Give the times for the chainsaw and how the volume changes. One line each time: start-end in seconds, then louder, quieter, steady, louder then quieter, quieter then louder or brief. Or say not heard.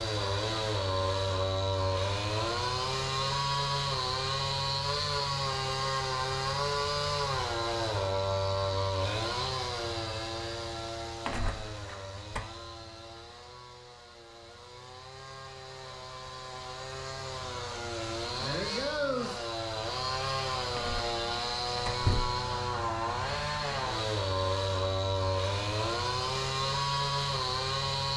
0.0-28.1 quieter then louder.